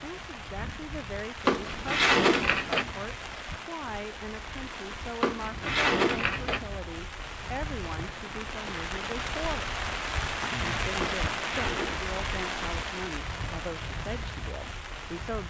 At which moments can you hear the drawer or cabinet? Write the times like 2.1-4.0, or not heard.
1.4-2.9, 5.2-6.7, 10.9-12.1.